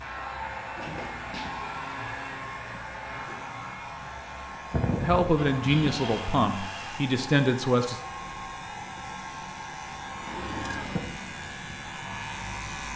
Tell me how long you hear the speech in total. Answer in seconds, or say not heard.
3 s.